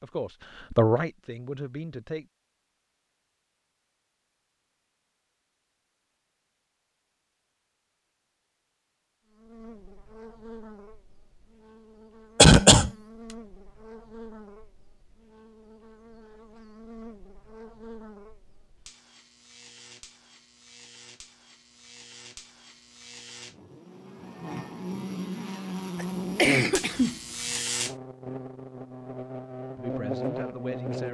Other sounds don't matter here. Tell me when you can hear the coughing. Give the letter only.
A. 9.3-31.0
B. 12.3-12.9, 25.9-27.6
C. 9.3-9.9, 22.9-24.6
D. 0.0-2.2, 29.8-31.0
B.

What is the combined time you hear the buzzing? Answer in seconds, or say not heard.
22 s.